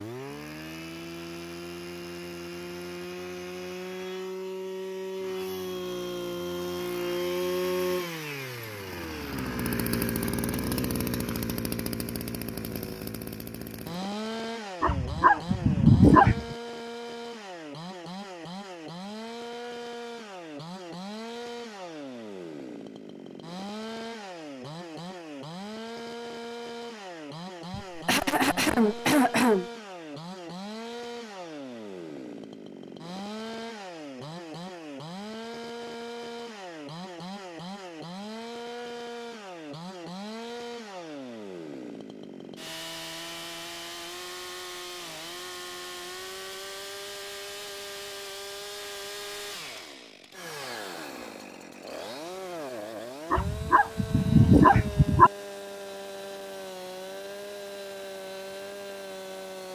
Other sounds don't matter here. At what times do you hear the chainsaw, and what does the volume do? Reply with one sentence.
You can hear the chainsaw from 0.0 to 59.7 s, getting quieter.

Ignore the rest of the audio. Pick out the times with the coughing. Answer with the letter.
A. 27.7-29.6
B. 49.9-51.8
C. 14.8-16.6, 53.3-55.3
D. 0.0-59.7
A.